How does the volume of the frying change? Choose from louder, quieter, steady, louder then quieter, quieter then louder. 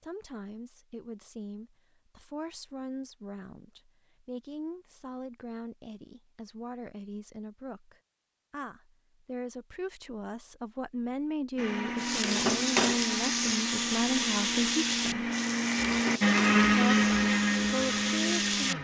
quieter.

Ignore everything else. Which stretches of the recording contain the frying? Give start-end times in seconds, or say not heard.
11.9-18.7.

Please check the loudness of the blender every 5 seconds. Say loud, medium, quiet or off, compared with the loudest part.
off, off, medium, loud.